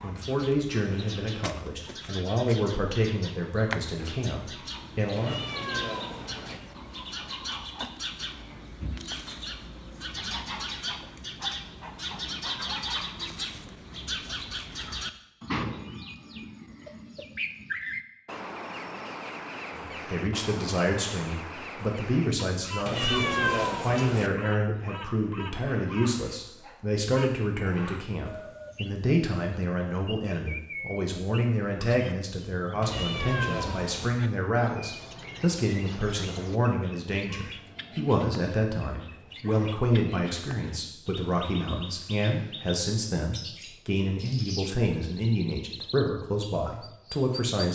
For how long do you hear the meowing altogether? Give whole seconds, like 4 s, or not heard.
4 s.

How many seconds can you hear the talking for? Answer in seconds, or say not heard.
33 s.